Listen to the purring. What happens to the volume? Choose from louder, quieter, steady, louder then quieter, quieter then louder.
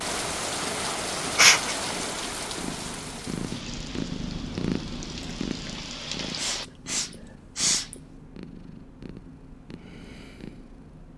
louder then quieter.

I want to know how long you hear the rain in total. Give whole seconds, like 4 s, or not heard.
7 s.